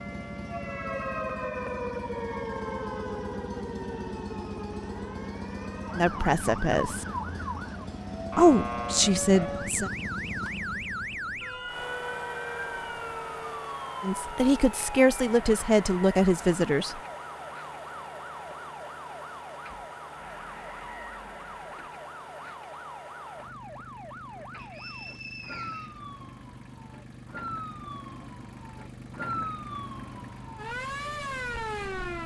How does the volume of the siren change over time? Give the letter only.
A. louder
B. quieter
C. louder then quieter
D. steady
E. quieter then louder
E.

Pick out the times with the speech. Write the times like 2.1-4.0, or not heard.
6.0-7.0, 8.3-9.9, 14.0-17.0.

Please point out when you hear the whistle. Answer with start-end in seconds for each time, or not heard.
24.6-26.0.